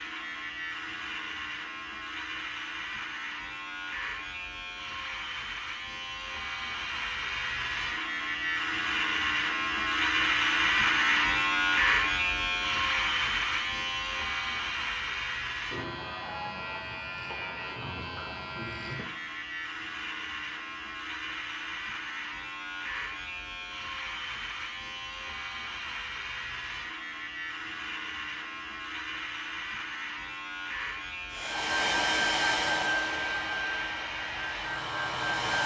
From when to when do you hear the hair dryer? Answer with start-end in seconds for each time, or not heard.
31.3-35.6.